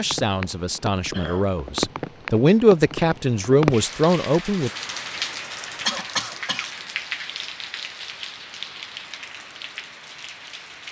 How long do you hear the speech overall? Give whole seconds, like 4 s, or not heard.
5 s.